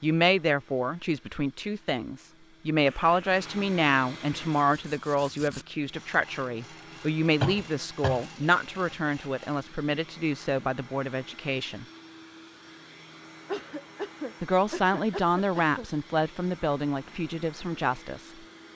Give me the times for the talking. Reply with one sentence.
The talking can be heard from 0.0 to 11.8 s and from 14.4 to 18.3 s.